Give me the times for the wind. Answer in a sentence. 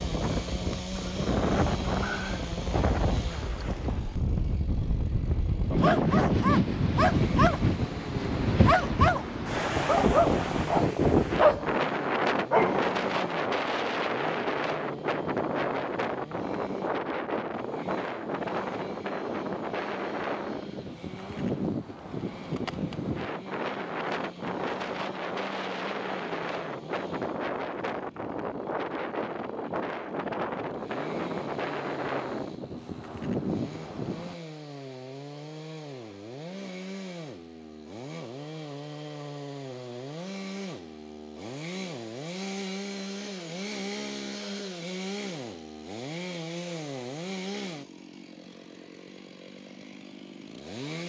The wind can be heard from 0.0 to 34.4 s.